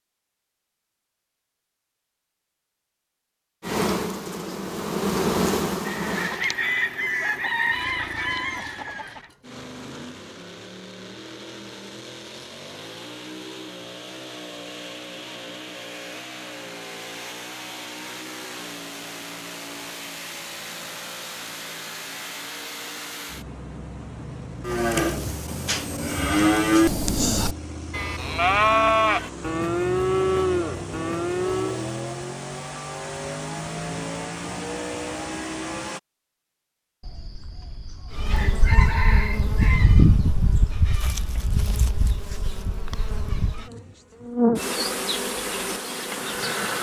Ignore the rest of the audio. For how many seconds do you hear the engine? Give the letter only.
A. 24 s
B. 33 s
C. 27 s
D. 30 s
D.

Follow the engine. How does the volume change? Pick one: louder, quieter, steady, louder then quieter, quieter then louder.
louder.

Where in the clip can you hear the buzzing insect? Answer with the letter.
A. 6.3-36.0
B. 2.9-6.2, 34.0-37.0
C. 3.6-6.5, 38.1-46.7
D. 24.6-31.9
C.